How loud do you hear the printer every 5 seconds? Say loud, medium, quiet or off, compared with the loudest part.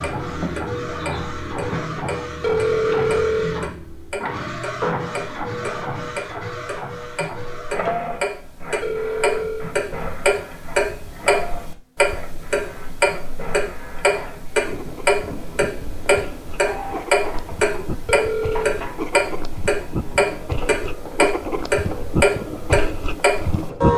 loud, loud, medium, medium, medium.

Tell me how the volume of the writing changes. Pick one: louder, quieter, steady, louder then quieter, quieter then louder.
louder.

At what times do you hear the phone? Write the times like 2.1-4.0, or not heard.
2.4-3.6, 8.8-9.8, 18.1-18.8.